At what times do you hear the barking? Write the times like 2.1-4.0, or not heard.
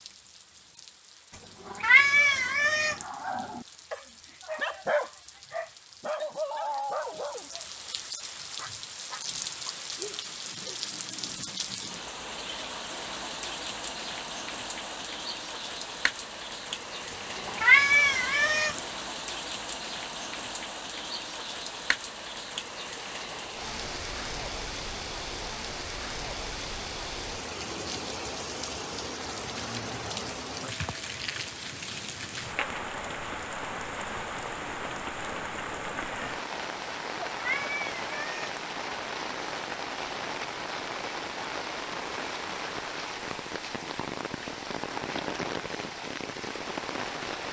2.9-10.8.